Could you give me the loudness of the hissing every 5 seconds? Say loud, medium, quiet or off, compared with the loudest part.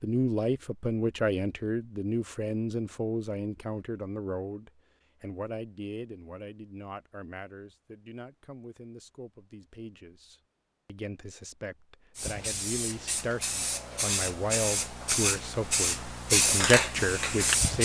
off, off, medium, loud.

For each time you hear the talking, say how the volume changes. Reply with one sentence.
The talking can be heard from 0.0 to 17.7 s, getting quieter then louder.